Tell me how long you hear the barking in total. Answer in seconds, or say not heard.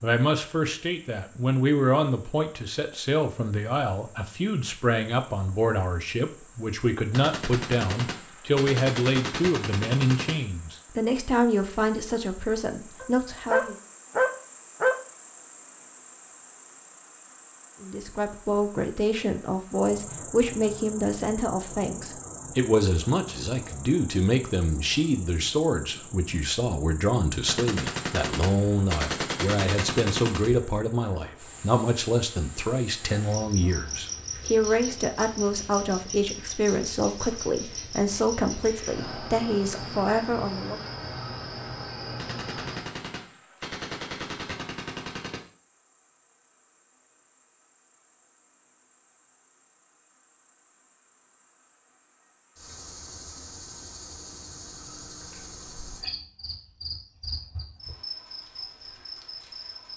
2 s.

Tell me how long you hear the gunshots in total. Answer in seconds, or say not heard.
10 s.